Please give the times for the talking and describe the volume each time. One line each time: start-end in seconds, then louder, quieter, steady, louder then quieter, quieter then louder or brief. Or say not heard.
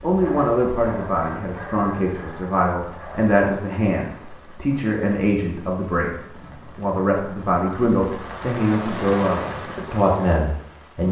0.0-11.0 steady.